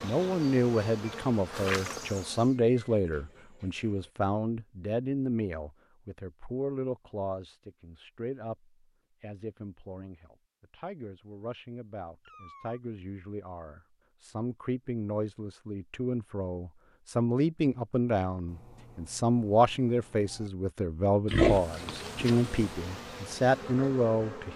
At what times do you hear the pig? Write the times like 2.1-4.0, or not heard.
21.2-22.7.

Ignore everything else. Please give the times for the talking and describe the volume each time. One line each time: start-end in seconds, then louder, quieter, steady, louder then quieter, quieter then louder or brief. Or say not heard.
0.0-24.5 quieter then louder.